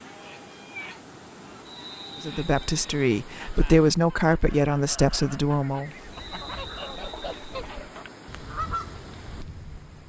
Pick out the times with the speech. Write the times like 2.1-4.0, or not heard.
2.2-5.9.